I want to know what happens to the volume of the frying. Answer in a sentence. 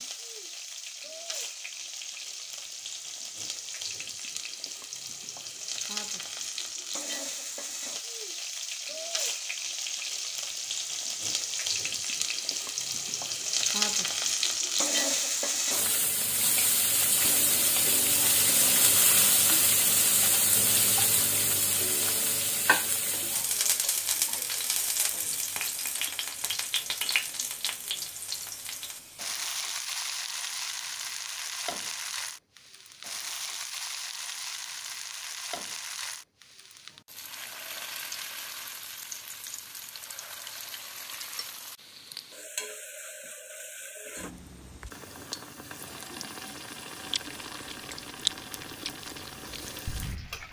The loudness of the frying goes up, then down.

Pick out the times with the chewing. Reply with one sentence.
You can hear the chewing from 47.1 to 50.4 s.